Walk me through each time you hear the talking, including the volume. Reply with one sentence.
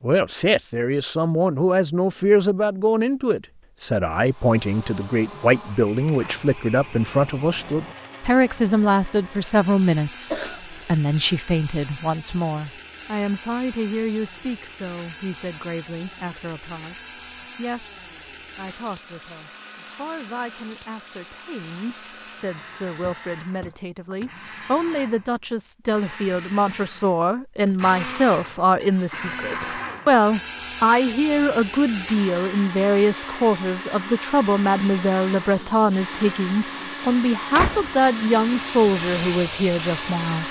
The talking can be heard from 0.0 to 40.4 s, getting quieter then louder.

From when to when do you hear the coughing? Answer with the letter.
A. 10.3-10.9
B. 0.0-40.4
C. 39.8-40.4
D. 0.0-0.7
A.